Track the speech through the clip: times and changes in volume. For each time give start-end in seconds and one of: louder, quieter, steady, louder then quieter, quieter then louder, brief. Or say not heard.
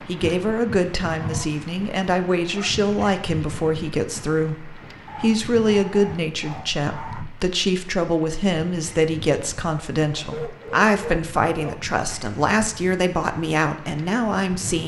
0.0-14.8 steady.